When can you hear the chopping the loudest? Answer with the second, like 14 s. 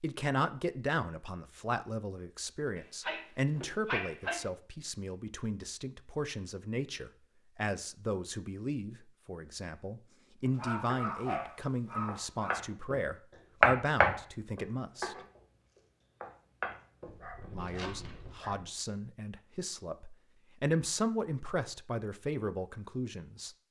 14 s.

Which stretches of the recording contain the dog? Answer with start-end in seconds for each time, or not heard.
2.8-4.4, 10.6-12.6, 17.1-18.7.